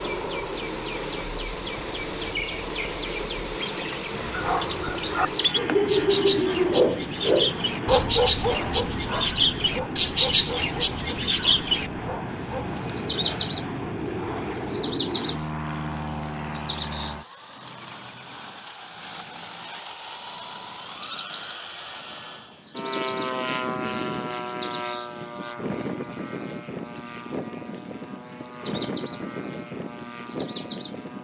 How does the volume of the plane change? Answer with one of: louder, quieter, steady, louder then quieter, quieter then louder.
steady.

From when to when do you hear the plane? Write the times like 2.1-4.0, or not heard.
0.0-31.1.